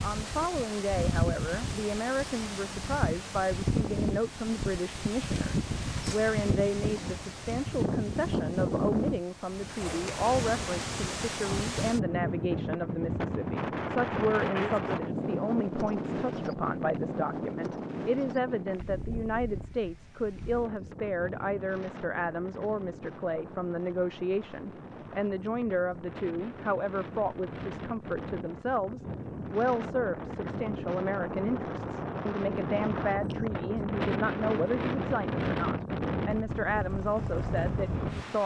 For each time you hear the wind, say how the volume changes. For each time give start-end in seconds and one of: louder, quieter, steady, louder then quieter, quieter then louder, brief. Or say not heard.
0.0-38.4 quieter then louder.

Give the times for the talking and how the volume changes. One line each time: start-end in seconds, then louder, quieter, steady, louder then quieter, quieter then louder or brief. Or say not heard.
0.0-38.4 steady.